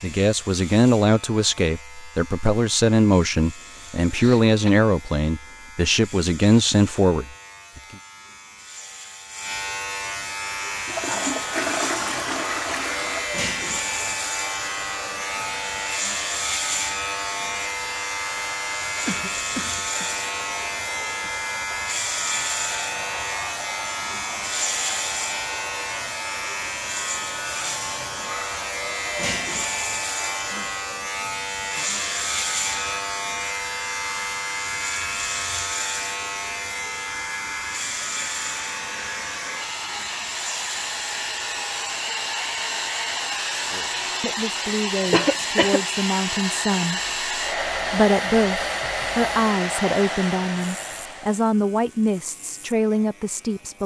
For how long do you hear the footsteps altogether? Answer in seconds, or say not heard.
not heard.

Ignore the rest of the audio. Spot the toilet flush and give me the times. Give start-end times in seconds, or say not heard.
10.8-13.3.